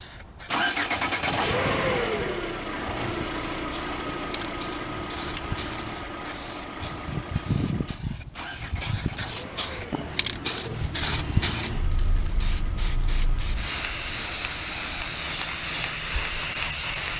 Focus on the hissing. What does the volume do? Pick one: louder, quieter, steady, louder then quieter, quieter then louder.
louder.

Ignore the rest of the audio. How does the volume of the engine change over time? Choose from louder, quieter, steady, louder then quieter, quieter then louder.
quieter.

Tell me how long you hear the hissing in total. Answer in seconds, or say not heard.
17 s.